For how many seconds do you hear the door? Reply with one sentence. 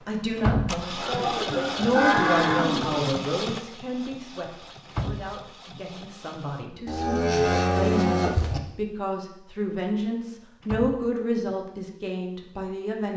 You can hear the door for 3 seconds altogether.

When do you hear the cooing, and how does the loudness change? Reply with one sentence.
The cooing can't be heard in this clip.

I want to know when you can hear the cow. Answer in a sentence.
The cow can be heard from 1.0 to 3.0 s and from 6.8 to 8.6 s.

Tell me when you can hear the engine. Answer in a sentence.
The engine can be heard from 0.0 to 6.7 s.